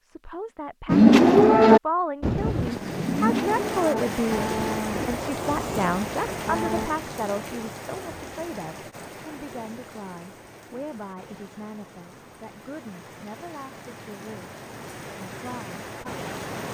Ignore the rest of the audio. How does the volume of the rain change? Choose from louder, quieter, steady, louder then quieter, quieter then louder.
quieter then louder.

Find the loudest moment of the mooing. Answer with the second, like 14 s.
1 s.